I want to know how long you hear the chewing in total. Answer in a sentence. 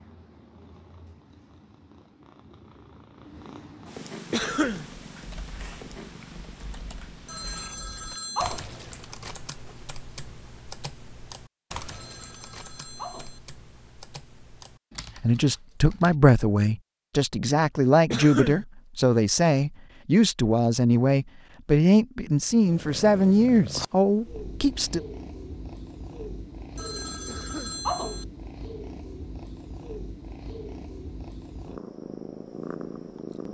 The chewing can't be heard in this clip.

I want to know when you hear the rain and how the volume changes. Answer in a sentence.
You can't hear the rain here.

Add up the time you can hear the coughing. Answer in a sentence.
You can hear the coughing for 2 seconds altogether.